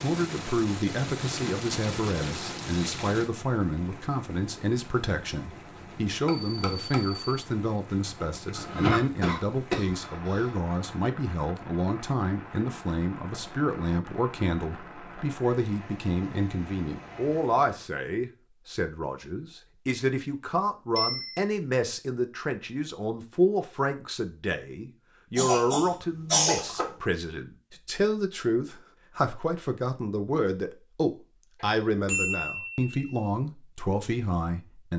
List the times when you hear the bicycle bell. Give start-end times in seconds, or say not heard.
6.2-7.2, 20.9-21.4, 31.6-33.2.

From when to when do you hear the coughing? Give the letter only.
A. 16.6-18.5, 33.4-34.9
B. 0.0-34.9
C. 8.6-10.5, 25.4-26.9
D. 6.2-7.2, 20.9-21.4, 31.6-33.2
C.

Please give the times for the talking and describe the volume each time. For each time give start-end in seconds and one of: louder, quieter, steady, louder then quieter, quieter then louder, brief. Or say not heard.
0.0-34.9 steady.